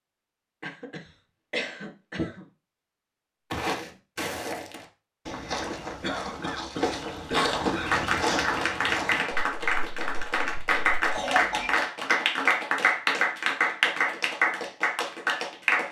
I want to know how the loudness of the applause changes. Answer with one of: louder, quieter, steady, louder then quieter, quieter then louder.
steady.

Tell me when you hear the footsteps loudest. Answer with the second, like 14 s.
8 s.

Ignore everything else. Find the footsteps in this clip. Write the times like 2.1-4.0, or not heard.
3.5-11.1.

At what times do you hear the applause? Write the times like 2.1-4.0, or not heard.
7.8-15.8.